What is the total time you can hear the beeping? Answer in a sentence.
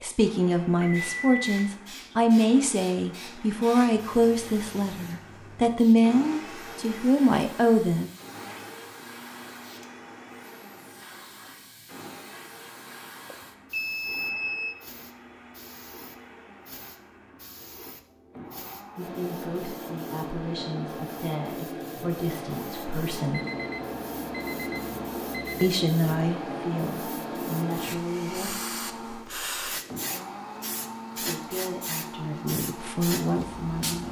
The beeping can be heard for 5 seconds in total.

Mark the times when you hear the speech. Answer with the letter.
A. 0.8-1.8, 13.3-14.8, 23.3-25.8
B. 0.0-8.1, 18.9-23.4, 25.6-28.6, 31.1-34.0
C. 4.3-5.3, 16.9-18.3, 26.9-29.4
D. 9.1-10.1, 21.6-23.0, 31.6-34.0
B.